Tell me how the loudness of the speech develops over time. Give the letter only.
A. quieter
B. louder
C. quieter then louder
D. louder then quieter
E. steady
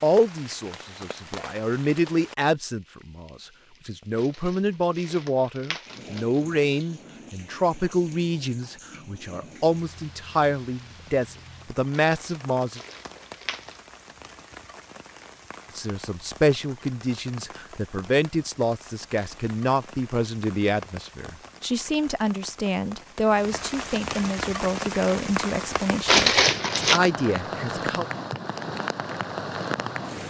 E.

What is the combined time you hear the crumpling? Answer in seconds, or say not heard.
5 s.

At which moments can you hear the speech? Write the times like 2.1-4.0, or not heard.
0.0-12.8, 15.8-28.1.